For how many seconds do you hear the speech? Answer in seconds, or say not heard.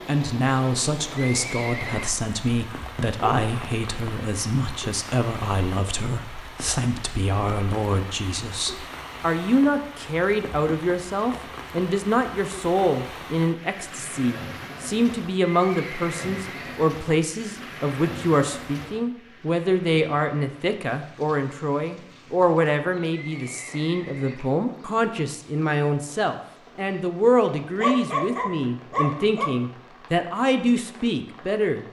32 s.